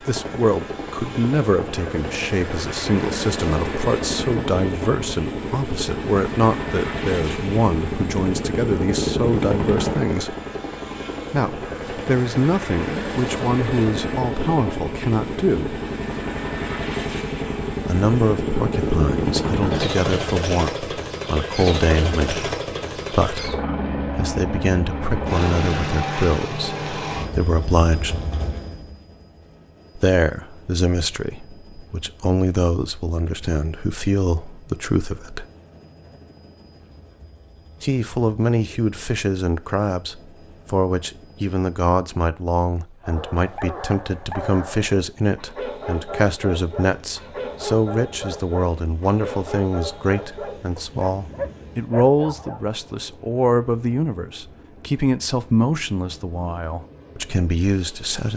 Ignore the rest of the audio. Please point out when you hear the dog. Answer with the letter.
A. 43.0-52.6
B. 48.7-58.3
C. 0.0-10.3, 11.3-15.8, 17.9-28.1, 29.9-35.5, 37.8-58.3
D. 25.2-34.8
A.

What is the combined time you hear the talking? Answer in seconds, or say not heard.
51 s.